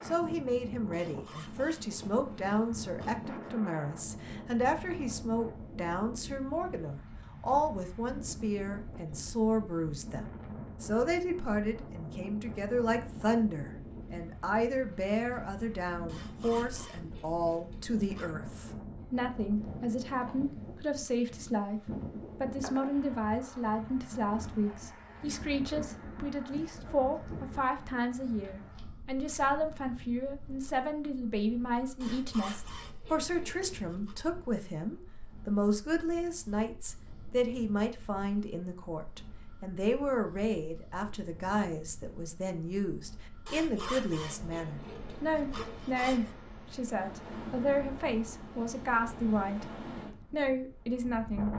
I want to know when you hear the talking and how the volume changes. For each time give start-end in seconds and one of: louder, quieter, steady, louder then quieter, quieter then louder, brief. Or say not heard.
0.0-51.5 steady.